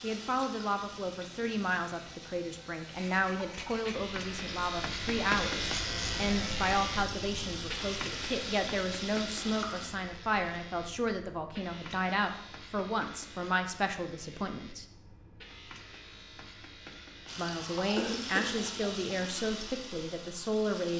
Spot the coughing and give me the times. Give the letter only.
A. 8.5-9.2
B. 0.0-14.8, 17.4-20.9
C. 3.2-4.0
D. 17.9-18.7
D.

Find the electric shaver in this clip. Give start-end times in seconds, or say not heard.
0.0-20.9.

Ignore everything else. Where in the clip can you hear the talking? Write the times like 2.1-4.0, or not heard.
0.0-14.8, 17.4-20.9.